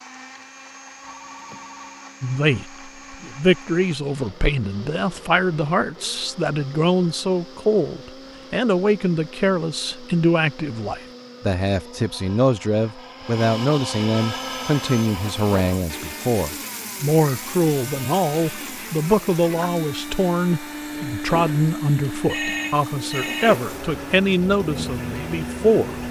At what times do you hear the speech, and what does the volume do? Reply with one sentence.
You can hear the speech from 2.2 to 26.0 s, at a steady volume.